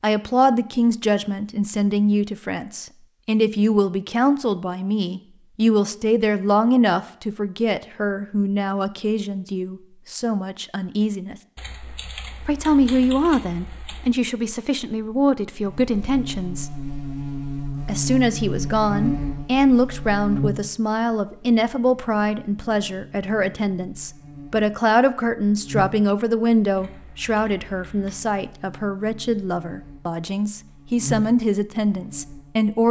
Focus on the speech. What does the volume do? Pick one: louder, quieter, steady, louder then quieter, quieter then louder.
steady.